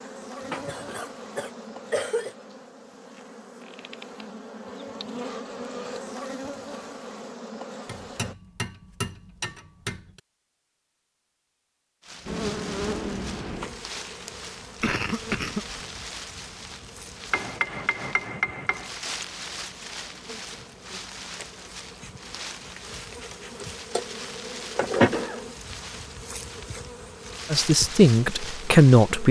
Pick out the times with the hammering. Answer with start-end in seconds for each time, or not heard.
7.8-10.2, 17.3-19.0.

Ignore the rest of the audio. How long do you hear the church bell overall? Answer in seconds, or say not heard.
not heard.